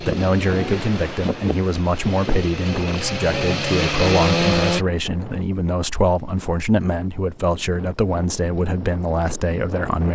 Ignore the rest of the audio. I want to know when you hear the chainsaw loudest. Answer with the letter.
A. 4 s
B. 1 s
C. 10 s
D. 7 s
A.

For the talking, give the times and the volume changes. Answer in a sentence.
You can hear the talking from 0.0 to 10.1 s, at a steady volume.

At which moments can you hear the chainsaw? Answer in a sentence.
The chainsaw can be heard from 0.0 to 4.8 s.